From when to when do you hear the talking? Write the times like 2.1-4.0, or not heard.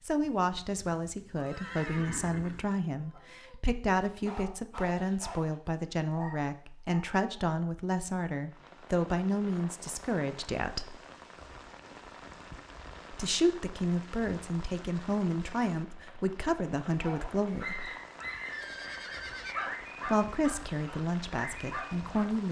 0.1-10.9, 13.1-17.9, 20.1-22.4.